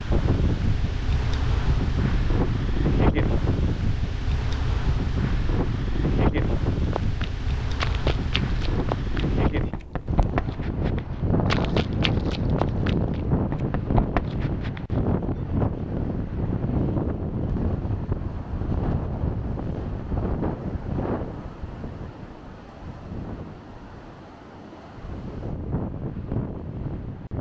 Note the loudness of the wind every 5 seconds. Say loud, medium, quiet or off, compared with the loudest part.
loud, loud, loud, loud, medium, medium.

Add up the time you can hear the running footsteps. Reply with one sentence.
You can hear the running footsteps for 8 seconds altogether.